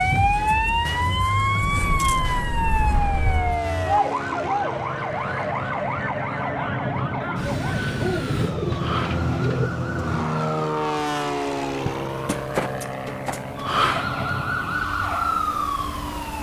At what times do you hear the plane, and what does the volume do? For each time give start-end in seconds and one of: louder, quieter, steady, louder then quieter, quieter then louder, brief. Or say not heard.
0.0-16.3 louder then quieter.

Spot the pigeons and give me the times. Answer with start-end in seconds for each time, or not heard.
7.7-9.7.